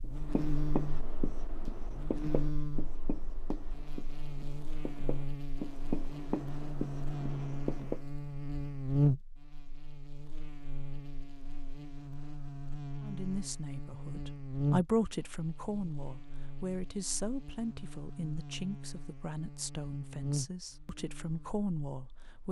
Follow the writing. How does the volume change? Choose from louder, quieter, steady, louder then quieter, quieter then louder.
quieter then louder.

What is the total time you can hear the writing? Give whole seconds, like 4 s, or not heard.
8 s.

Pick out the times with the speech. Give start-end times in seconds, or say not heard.
13.0-22.4.